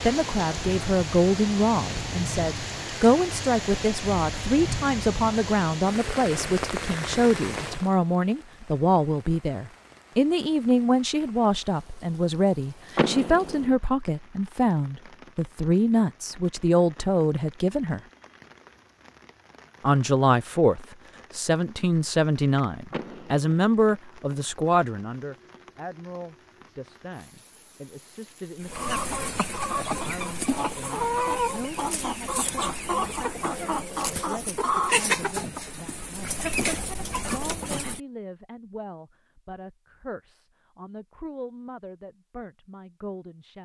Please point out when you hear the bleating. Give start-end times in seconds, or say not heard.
not heard.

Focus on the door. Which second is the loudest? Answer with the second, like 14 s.
13 s.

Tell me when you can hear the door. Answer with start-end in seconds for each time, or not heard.
12.9-13.8, 22.9-23.5.